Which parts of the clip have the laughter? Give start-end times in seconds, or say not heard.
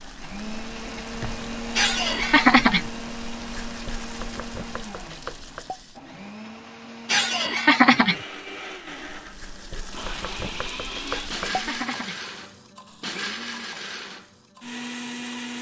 1.8-2.9, 7.0-8.2, 11.1-12.2.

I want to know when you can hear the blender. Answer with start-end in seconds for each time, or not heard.
0.0-15.5.